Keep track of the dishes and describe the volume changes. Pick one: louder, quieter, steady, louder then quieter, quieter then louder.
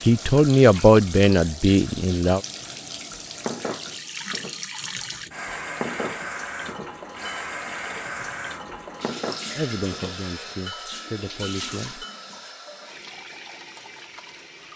quieter then louder.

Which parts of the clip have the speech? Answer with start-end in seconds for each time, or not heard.
0.0-2.4, 9.6-12.1.